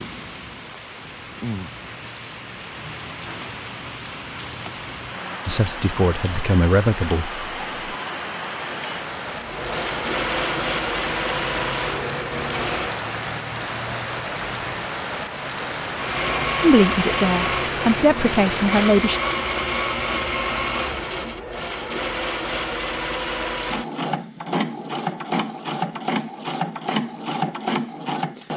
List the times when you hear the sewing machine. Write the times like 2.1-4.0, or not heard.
9.4-13.1, 15.9-28.5.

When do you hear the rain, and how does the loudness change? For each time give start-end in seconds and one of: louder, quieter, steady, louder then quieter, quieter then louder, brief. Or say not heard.
0.0-18.9 louder.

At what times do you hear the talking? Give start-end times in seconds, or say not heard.
5.5-7.9, 16.6-19.2.